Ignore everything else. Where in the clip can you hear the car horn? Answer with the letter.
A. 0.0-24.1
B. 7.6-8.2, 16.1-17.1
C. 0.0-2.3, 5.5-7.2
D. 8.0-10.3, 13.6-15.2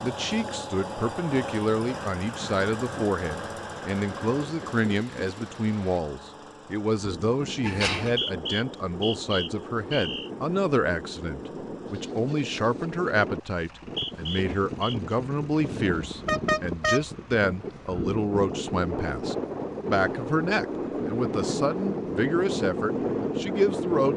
B.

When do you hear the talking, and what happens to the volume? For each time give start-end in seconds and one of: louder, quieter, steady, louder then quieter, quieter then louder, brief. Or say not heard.
0.0-24.1 steady.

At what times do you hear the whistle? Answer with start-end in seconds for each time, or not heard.
8.0-10.3, 13.6-15.2.